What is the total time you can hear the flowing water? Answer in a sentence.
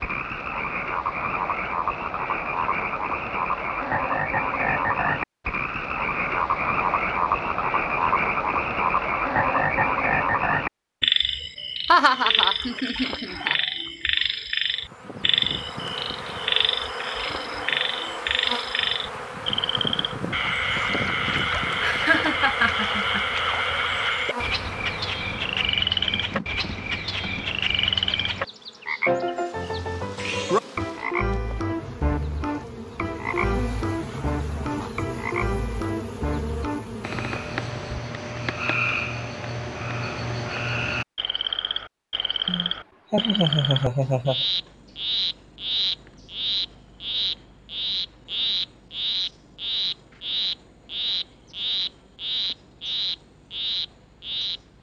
The flowing water can't be heard in this clip.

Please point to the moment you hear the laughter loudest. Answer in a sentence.
The volume of the laughter peaks at 12 seconds.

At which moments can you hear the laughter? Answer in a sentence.
You can hear the laughter from 11.9 to 13.6 s, from 21.8 to 23.2 s and from 42.5 to 44.5 s.